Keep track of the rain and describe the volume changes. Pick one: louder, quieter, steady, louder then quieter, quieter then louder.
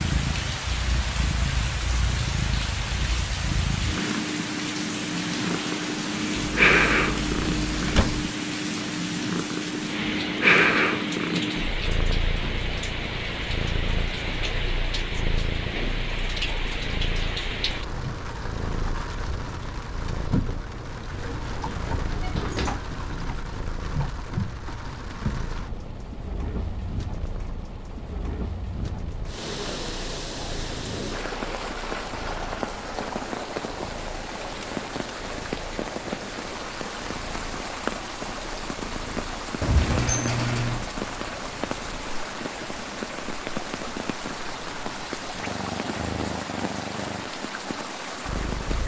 steady.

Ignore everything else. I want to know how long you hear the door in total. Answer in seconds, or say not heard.
5 s.